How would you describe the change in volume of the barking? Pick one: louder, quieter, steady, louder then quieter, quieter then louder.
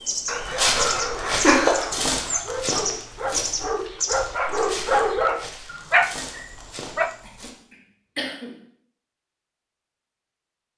louder.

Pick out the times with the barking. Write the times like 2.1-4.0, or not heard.
0.3-7.2.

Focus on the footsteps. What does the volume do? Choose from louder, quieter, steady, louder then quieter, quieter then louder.
quieter.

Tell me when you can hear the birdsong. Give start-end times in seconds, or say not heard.
0.0-6.5.